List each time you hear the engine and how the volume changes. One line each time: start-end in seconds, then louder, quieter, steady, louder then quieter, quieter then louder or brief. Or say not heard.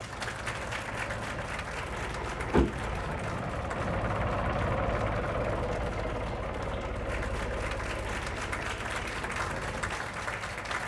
0.0-10.8 louder then quieter.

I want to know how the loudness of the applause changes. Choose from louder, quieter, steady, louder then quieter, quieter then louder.
quieter then louder.